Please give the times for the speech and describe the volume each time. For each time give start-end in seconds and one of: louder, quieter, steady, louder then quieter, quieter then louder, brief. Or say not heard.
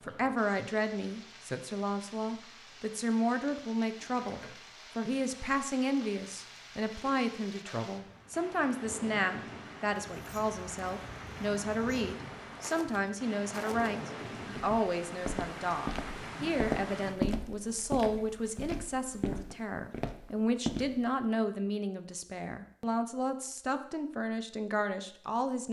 0.0-25.6 steady.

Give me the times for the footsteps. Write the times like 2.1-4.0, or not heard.
10.0-21.1.